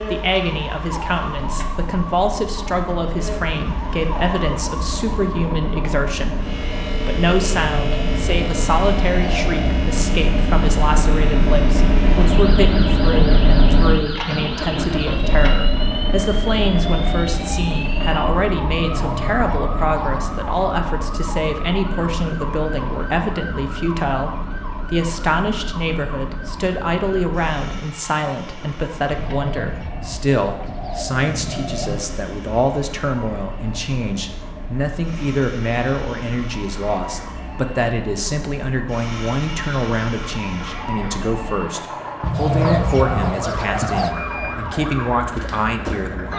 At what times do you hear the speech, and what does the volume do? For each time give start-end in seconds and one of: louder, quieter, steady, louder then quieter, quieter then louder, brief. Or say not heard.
0.0-46.3 steady.